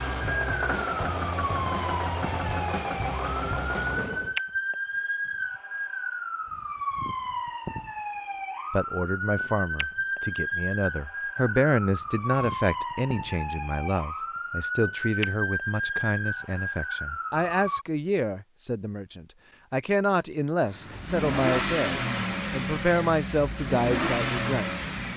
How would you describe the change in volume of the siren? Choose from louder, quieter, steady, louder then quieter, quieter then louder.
steady.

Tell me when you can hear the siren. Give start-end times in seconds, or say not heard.
0.1-17.9.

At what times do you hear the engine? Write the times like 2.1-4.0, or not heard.
0.0-4.3, 20.6-25.1.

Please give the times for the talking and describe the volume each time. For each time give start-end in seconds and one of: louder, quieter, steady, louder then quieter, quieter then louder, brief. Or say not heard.
8.7-24.8 steady.